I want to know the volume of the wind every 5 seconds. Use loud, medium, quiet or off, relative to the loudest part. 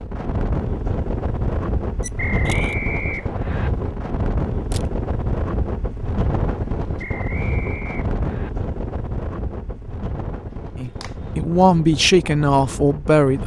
loud, loud, medium.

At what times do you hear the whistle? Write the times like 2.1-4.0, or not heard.
2.1-3.7, 7.0-8.5.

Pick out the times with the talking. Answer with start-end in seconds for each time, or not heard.
10.8-13.4.